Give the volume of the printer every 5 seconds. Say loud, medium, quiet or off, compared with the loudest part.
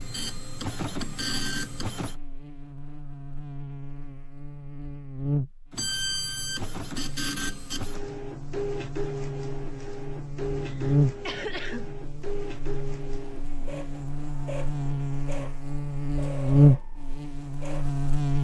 loud, loud, medium, medium.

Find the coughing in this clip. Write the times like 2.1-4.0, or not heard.
10.6-11.9.